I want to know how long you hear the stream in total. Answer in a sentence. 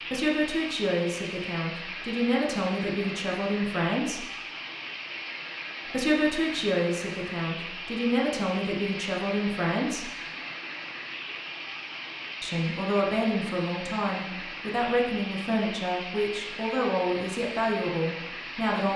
You can hear the stream for 19 seconds altogether.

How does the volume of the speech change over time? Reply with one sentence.
The loudness of the speech stays about the same.